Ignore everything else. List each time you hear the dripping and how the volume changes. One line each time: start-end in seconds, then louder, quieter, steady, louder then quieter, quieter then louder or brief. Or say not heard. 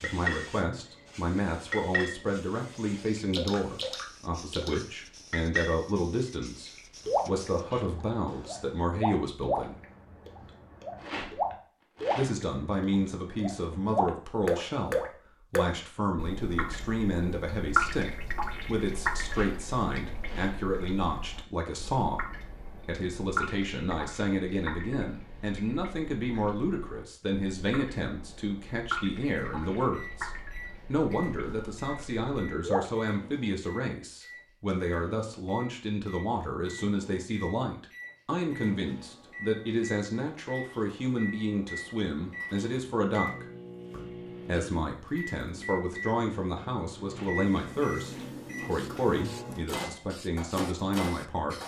0.0-0.5 brief
1.7-2.1 brief
3.1-5.8 brief
6.7-33.1 quieter.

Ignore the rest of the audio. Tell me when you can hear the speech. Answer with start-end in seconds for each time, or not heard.
0.0-9.8, 12.2-22.2, 22.9-30.3, 30.9-51.5.